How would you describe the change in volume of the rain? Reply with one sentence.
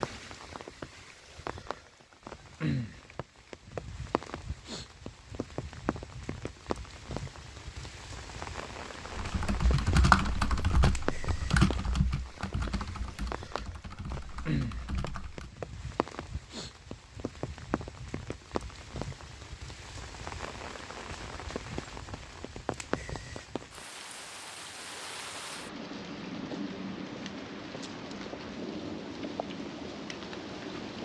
The loudness of the rain stays about the same.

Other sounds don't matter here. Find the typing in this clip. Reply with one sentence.
The typing can be heard from 9.1 to 15.5 s.